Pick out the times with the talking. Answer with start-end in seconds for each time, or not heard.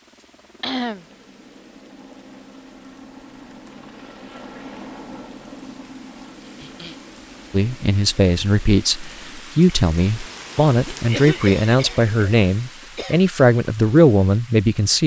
7.5-15.0.